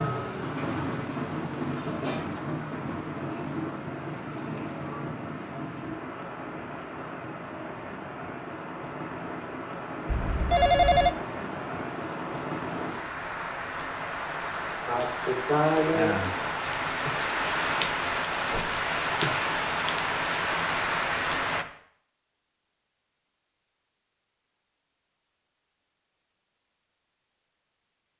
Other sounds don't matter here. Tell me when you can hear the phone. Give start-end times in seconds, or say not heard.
10.1-11.2.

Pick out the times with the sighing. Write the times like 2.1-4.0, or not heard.
14.8-16.2.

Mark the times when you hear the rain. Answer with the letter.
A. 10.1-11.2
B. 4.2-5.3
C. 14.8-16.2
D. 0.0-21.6
D.